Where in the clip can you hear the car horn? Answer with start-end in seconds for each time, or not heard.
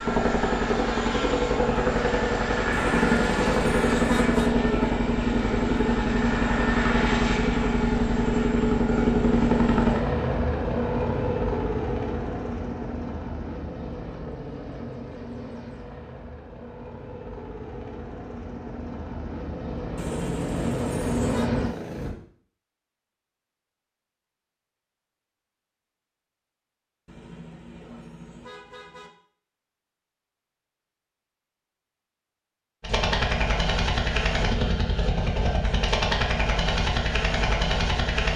2.7-4.5, 19.9-21.5, 27.1-29.1.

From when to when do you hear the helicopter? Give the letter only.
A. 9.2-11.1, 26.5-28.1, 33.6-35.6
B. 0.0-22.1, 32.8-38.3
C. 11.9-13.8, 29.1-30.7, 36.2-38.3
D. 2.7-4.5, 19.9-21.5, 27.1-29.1
B.